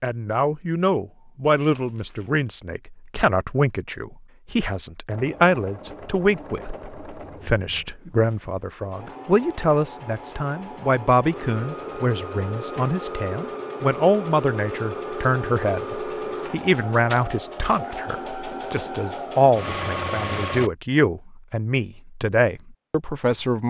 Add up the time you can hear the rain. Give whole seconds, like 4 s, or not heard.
not heard.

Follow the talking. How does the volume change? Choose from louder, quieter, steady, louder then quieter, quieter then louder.
steady.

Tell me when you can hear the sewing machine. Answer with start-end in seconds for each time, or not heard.
5.1-20.7.